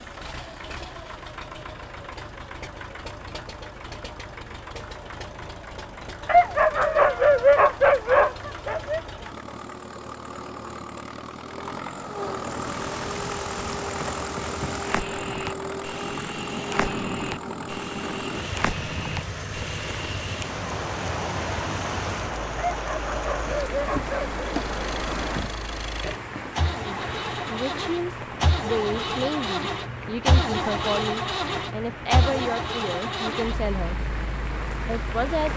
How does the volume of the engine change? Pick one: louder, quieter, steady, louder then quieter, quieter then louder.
louder.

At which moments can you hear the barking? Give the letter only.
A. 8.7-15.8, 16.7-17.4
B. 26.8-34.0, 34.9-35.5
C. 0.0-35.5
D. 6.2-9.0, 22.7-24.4
D.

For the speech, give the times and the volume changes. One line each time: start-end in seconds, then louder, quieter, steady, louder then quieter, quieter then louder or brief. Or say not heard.
26.8-34.0 steady
34.9-35.5 brief.